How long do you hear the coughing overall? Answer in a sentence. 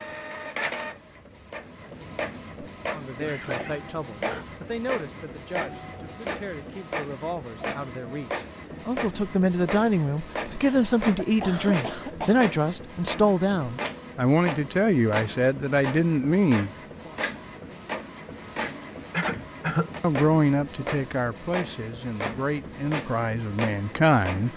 The coughing can be heard for 4 seconds in total.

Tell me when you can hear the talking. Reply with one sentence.
You can hear the talking from 2.9 to 17.1 s and from 20.0 to 24.5 s.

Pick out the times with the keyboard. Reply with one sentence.
You can't hear the keyboard here.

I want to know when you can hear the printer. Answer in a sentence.
The printer can be heard from 0.0 to 24.5 s.